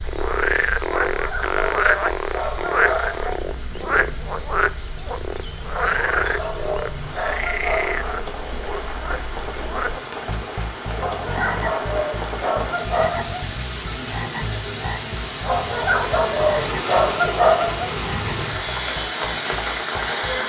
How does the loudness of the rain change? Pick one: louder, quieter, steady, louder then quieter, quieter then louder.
louder.